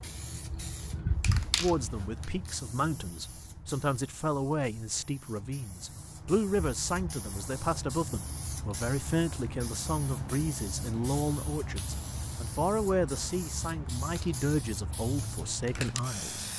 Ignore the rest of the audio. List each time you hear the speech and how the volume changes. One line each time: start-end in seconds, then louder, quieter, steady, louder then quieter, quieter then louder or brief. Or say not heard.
1.6-16.5 steady.